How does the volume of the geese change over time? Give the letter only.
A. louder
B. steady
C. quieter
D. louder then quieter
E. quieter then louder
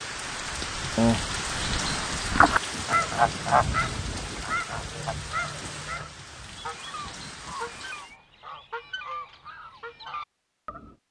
C.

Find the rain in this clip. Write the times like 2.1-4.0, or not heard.
0.0-8.2.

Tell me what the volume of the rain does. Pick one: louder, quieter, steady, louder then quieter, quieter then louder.
quieter.